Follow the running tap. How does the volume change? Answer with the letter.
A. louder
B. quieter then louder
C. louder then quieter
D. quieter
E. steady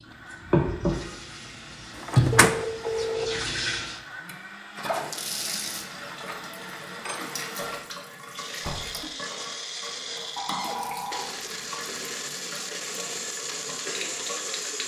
D.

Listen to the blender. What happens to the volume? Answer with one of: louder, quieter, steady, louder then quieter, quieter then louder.
louder.